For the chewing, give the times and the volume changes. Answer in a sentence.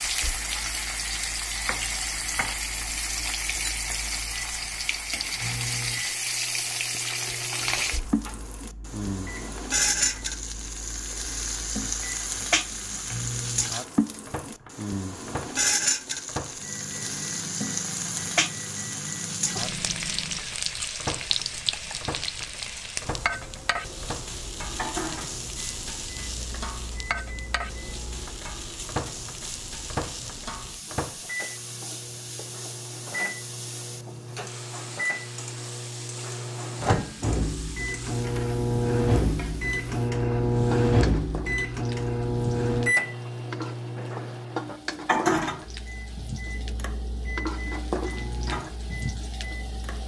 You can't hear the chewing here.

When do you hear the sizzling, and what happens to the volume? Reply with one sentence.
The sizzling can be heard from 0.0 to 50.0 s, getting quieter.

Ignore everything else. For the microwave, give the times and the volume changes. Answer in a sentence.
The microwave can be heard from 0.0 to 50.0 s, getting louder.